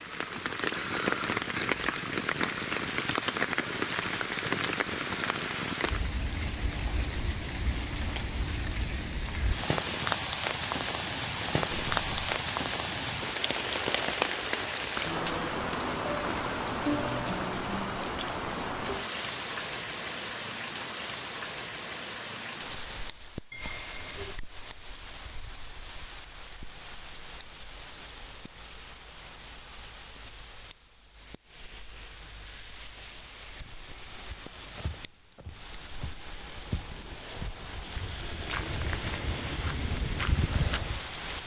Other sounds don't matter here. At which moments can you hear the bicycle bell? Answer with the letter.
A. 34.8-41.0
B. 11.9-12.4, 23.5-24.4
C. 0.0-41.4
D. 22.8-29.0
B.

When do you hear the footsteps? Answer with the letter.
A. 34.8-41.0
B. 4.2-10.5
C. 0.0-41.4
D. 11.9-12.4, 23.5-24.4
A.